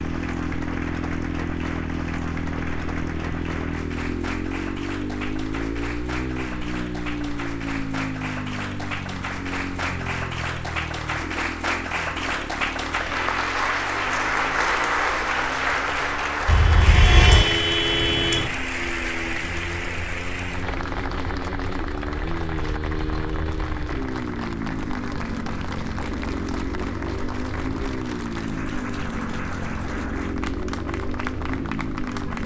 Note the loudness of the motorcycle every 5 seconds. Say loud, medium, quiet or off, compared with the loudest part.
loud, loud, medium, medium, loud, loud, loud.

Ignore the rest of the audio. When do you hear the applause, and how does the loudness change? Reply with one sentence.
You can hear the applause from 0.0 to 32.4 s, getting louder then quieter.